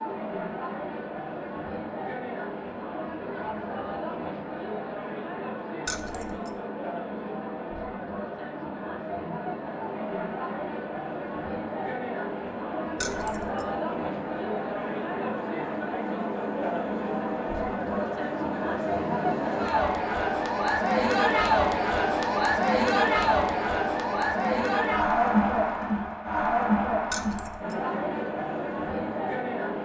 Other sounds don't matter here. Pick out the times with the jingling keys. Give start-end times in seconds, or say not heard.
5.8-6.5, 12.9-13.7, 27.1-27.8.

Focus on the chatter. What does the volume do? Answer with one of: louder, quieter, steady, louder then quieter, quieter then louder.
louder.